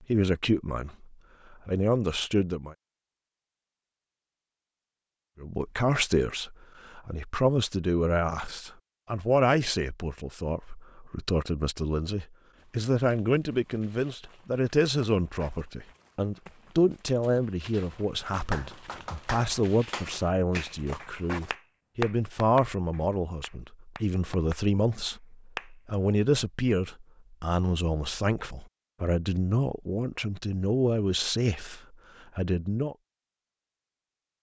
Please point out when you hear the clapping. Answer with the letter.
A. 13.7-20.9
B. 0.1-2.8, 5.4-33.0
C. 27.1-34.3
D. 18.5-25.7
D.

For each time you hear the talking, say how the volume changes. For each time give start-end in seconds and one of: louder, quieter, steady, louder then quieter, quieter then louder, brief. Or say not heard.
0.1-2.8 brief
5.4-33.0 steady.